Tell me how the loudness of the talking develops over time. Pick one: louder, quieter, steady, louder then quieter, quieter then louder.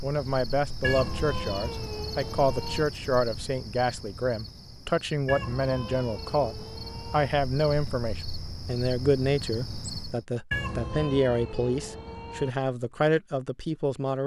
steady.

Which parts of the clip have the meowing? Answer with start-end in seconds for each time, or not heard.
0.8-2.9, 5.2-7.3, 10.5-12.5.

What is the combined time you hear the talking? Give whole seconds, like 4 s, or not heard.
14 s.